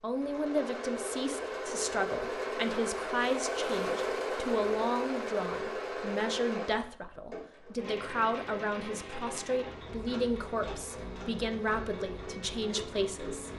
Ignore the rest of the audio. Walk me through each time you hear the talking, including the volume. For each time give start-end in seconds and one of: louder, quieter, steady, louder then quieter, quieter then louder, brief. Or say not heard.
0.0-13.5 steady.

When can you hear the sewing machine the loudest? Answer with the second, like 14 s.
4 s.